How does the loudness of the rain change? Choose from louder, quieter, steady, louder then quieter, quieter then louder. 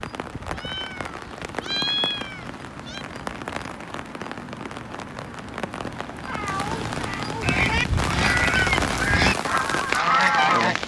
louder.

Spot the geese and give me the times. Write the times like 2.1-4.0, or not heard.
7.4-10.8.